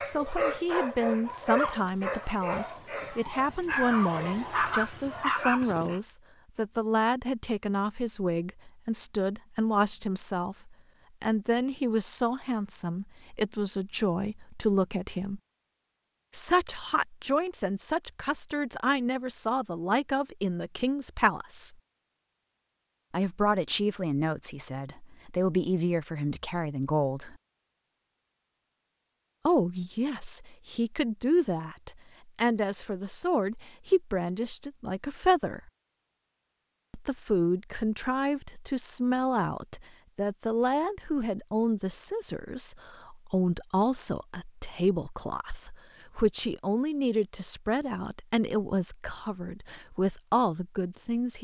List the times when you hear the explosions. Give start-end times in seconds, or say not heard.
not heard.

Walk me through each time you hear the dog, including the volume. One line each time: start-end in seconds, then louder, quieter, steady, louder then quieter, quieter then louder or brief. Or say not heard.
0.0-6.0 quieter then louder.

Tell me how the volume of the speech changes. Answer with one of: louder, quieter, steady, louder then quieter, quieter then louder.
steady.